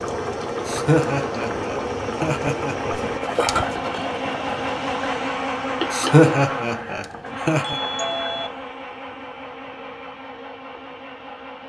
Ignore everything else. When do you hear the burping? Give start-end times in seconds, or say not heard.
not heard.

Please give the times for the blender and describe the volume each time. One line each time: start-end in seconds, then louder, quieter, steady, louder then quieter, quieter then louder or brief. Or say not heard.
0.0-11.6 louder then quieter.